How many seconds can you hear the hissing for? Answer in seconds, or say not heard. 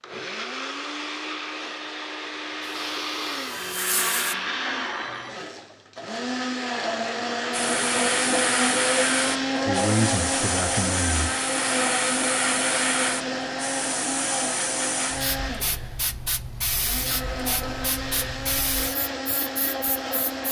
15 s.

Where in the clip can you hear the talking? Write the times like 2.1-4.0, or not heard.
9.7-11.3.